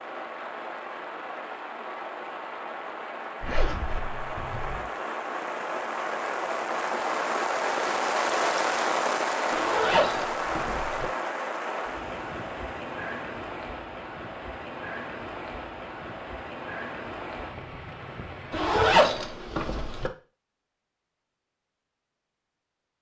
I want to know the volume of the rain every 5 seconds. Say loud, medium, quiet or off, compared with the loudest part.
medium, loud, medium, medium, off.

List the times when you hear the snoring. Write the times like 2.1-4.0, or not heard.
not heard.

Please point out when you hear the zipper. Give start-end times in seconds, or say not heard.
3.4-4.8, 9.5-11.1, 18.5-20.1.